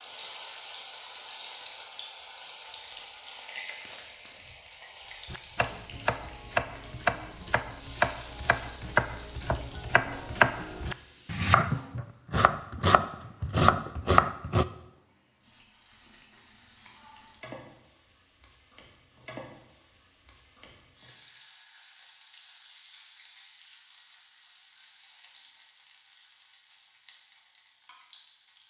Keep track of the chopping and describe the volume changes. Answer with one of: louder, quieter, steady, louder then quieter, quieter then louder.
louder.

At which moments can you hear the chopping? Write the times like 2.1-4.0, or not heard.
5.2-14.7.